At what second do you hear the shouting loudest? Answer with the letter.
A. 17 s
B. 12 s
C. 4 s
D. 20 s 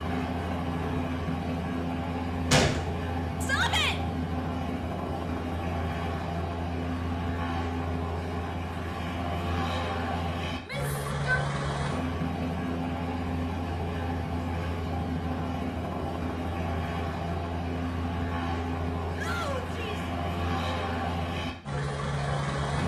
C.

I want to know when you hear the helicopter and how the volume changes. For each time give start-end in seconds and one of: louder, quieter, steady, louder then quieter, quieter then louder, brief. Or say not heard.
0.0-22.8 steady.